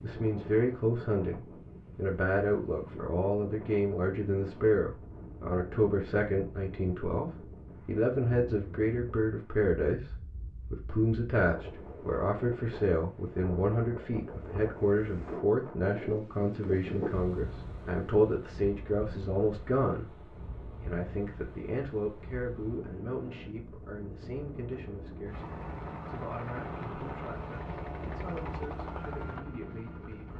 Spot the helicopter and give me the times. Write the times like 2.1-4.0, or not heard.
25.2-30.3.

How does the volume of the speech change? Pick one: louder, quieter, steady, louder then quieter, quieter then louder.
quieter.